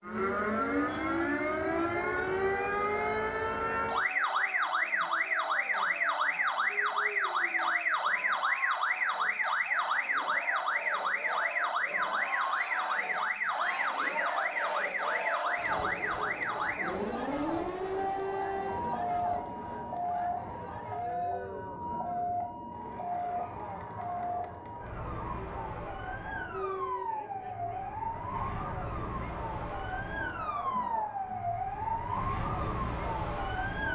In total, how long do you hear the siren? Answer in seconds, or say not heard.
34 s.